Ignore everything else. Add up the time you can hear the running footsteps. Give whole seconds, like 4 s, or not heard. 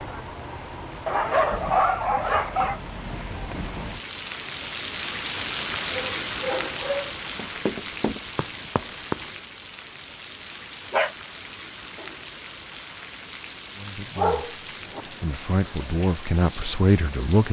2 s.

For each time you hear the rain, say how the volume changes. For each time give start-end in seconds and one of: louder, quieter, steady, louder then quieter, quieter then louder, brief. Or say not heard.
0.0-17.4 louder then quieter.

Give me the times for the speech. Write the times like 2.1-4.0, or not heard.
13.8-17.4.